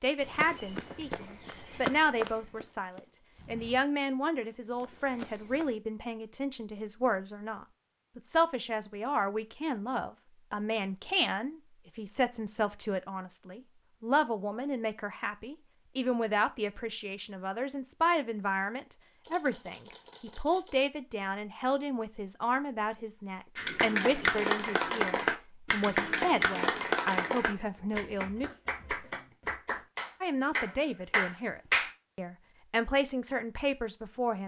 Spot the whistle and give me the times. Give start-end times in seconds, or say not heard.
not heard.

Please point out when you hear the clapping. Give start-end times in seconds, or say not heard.
23.6-31.9.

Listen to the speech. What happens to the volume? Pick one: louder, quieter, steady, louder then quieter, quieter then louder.
steady.